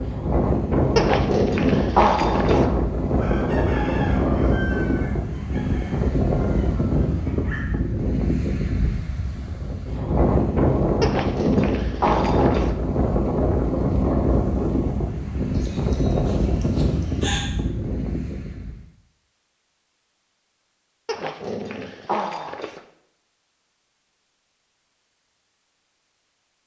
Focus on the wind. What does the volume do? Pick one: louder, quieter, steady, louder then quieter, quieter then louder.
steady.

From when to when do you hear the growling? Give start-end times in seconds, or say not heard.
0.9-2.7, 11.0-12.8, 21.1-22.8.